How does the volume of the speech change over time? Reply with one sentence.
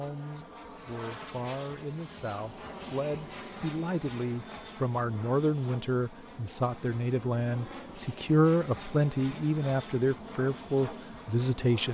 The volume of the speech goes up.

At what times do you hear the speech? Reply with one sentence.
The speech can be heard from 0.0 to 11.9 s.